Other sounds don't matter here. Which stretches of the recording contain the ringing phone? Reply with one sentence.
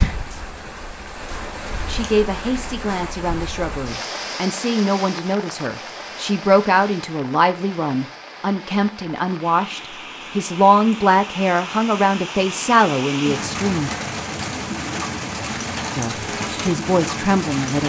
You can't hear the ringing phone here.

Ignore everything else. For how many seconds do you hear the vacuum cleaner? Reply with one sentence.
The vacuum cleaner can't be heard in this clip.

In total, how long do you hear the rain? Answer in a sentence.
The rain can be heard for 18 seconds in total.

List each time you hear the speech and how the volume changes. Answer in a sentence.
The speech can be heard from 1.9 to 13.9 s, getting louder; and briefly from 15.9 to 17.8 s.